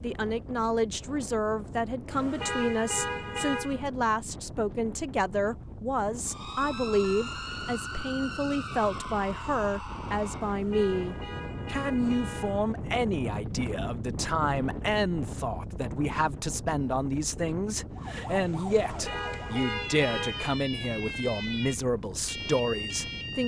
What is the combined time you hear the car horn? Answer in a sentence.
You can hear the car horn for 6 seconds altogether.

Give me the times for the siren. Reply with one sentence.
You can hear the siren from 6.2 to 10.6 s and from 17.9 to 23.4 s.